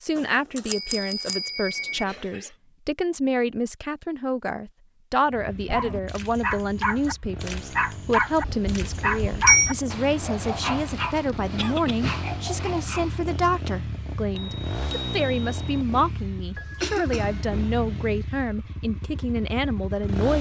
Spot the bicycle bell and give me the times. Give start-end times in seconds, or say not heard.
0.1-2.0, 8.4-9.8, 14.3-15.8.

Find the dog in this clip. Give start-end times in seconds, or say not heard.
5.7-13.2.